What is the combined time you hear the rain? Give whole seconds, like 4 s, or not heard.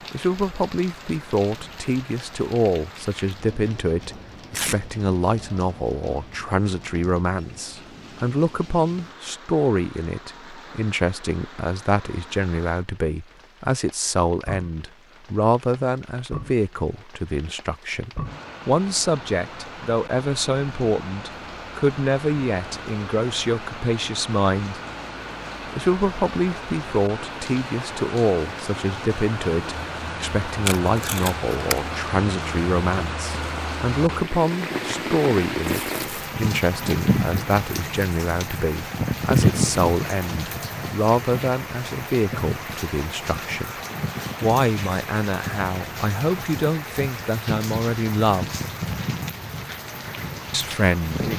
51 s.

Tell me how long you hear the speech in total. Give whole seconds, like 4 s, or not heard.
48 s.